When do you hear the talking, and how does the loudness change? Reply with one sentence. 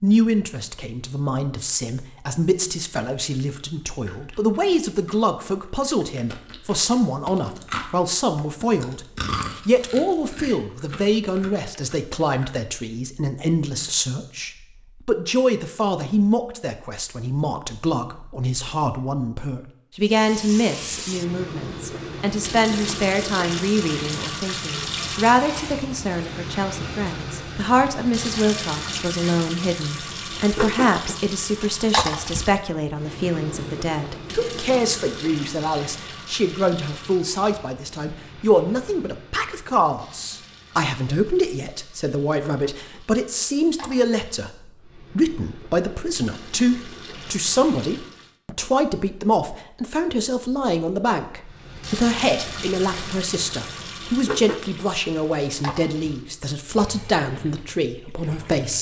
You can hear the talking from 0.0 to 58.7 s, at a steady volume.